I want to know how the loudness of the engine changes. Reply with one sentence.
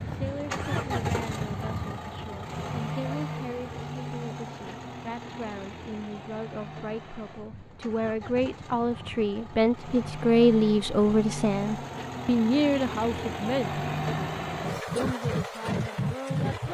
The volume of the engine goes down, then up.